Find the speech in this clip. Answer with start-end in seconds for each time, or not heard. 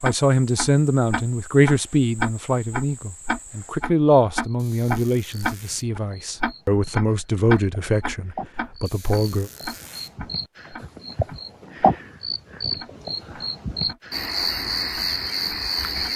0.0-9.5.